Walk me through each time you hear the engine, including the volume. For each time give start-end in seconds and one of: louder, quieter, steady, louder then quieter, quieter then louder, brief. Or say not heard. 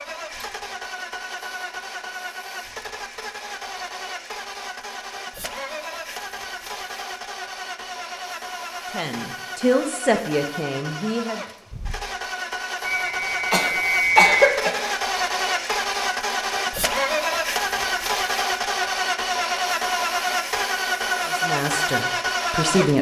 0.0-22.9 louder.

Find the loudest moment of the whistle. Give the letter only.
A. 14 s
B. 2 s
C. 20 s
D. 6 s
A.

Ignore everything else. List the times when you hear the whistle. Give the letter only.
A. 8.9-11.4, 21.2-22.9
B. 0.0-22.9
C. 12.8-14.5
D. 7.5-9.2
C.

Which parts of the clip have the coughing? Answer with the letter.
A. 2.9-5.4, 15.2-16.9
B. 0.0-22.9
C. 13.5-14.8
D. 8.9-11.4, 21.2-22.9
C.